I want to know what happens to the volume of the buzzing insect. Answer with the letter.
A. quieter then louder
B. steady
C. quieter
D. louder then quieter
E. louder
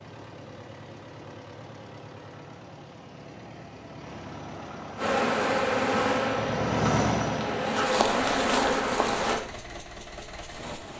A.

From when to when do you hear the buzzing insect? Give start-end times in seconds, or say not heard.
5.0-9.4.